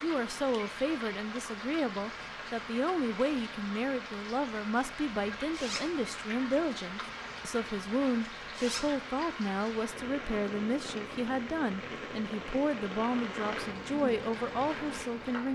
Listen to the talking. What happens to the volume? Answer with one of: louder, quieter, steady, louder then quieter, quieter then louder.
steady.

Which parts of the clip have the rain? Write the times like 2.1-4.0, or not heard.
0.0-15.4.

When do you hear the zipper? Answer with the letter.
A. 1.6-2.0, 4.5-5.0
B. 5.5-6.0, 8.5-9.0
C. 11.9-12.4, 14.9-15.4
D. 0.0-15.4
B.